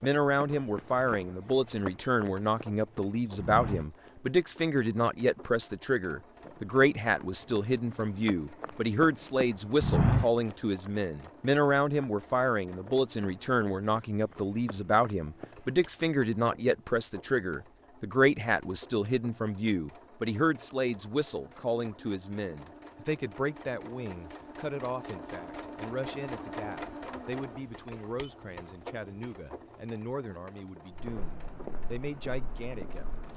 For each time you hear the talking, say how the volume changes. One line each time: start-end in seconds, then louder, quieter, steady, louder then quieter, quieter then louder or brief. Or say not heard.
0.0-33.3 quieter.